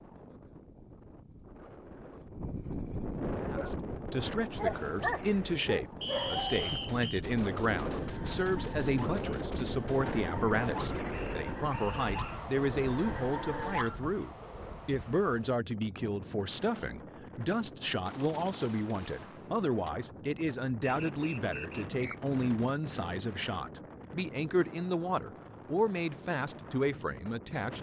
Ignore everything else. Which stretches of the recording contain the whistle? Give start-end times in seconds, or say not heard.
6.0-7.0, 11.1-12.4, 20.8-22.2.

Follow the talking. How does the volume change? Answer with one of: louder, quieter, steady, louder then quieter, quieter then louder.
steady.